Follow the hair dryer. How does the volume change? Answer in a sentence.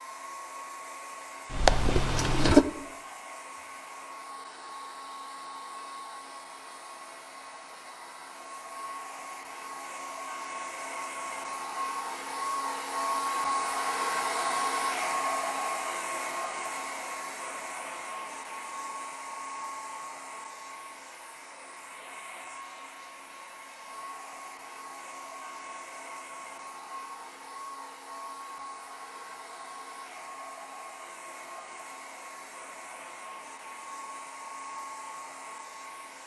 The volume of the hair dryer goes up, then down.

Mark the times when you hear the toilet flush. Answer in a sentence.
The toilet flush can be heard from 1.5 to 2.6 s.